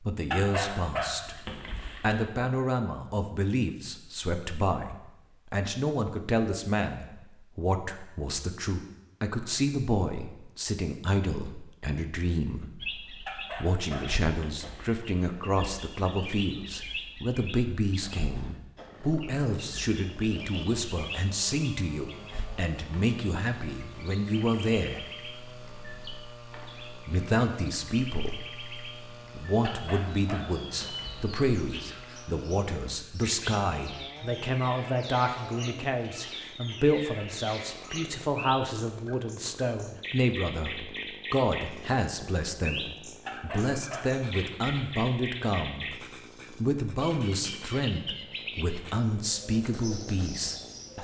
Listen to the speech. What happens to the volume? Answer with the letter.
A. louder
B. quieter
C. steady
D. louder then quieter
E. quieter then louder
C.